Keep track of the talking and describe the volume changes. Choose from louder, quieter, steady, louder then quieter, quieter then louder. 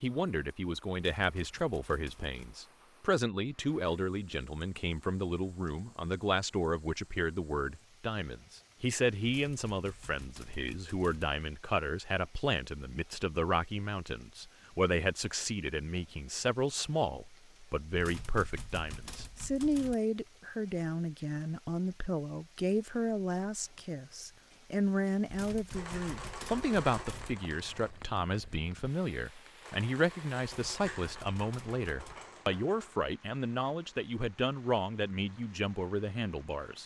steady.